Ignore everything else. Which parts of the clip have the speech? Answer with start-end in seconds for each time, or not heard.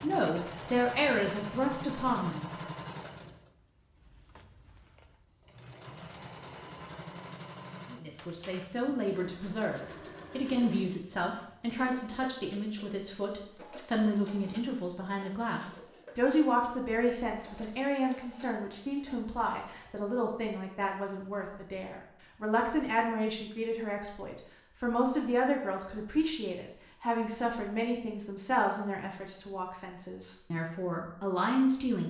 0.0-2.5, 7.9-32.0.